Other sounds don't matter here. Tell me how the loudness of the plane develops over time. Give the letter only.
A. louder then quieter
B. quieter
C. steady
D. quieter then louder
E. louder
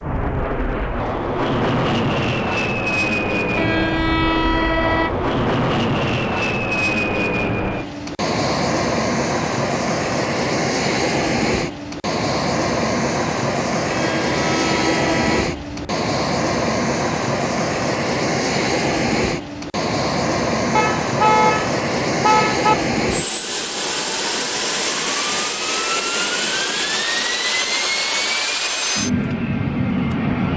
C.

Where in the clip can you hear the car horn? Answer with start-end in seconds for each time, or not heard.
3.5-5.3, 13.9-15.9, 20.8-22.8.